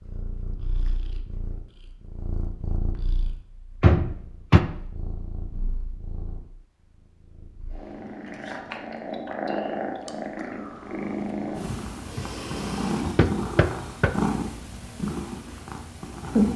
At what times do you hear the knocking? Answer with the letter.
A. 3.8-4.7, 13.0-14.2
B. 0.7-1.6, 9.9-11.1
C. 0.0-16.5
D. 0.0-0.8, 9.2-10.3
A.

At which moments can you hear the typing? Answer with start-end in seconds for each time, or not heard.
not heard.